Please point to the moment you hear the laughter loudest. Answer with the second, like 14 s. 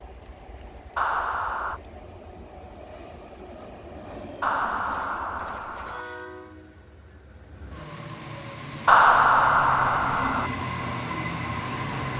9 s.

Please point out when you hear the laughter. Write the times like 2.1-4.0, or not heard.
0.9-1.8, 4.4-6.0, 8.8-10.5.